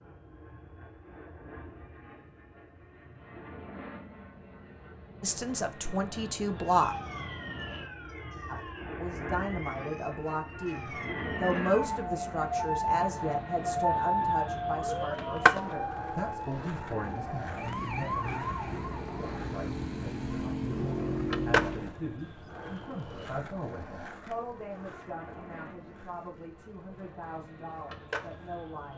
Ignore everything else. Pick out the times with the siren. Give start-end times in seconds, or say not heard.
6.7-21.9.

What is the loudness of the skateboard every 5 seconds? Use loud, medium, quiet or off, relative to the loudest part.
off, off, off, loud, loud, medium.